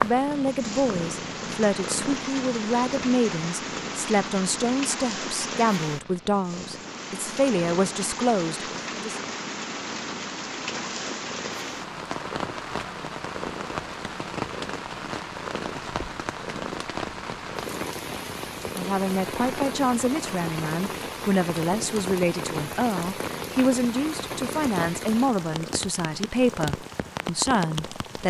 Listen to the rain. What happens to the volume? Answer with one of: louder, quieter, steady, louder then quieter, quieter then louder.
steady.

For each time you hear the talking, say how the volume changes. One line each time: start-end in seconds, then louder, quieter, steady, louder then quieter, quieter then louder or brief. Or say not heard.
0.0-9.2 steady
18.8-28.2 steady.